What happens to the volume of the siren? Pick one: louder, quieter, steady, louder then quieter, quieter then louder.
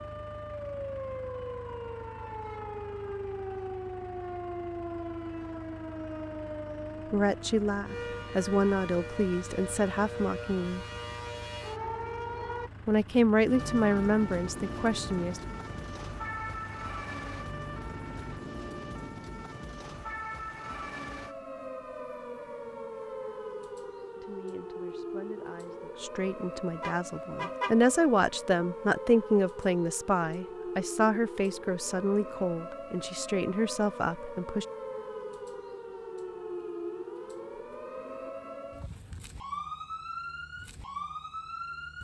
steady.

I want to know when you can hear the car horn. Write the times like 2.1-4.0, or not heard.
26.8-27.8.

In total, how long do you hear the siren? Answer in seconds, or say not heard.
42 s.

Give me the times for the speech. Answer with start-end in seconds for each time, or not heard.
7.1-10.8, 12.8-15.4, 24.1-34.6.